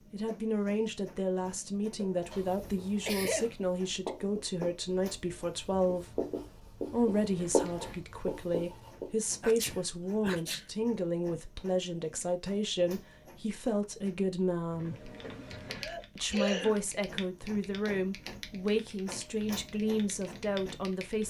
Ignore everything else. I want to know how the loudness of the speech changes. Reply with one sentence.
The loudness of the speech stays about the same.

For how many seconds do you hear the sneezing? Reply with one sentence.
You can hear the sneezing for 3 seconds altogether.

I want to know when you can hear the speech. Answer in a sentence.
The speech can be heard from 0.1 to 15.1 s and from 16.1 to 21.2 s.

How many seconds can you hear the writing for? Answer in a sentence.
You can hear the writing for 7 seconds altogether.